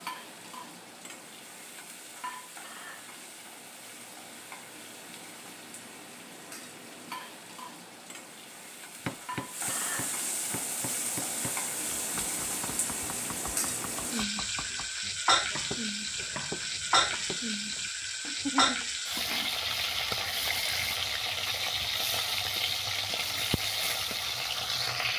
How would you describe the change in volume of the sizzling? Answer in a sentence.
The loudness of the sizzling goes up.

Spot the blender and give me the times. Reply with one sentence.
The blender can't be heard in this clip.